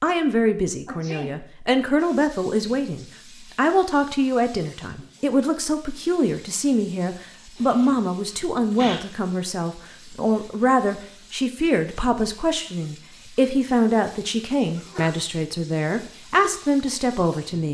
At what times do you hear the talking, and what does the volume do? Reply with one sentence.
You can hear the talking from 0.0 to 17.6 s, at a steady volume.